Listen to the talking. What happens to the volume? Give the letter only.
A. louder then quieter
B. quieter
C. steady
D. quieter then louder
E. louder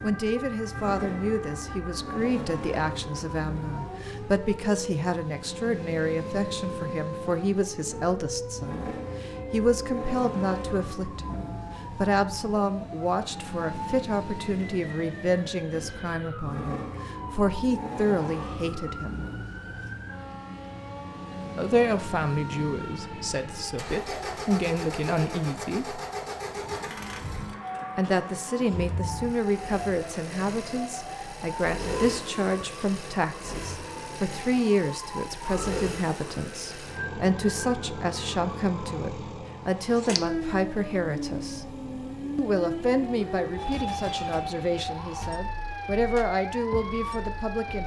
C.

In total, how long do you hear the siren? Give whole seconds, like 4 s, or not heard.
48 s.